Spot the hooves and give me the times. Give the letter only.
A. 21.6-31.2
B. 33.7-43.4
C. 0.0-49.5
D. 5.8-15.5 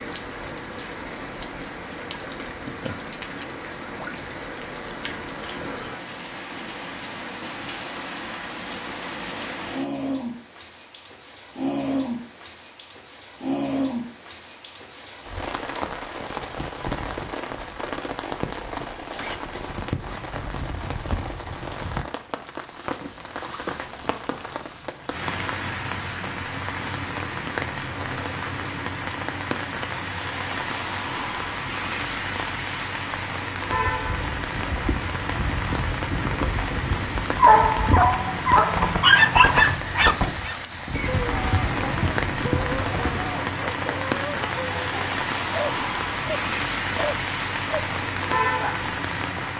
B.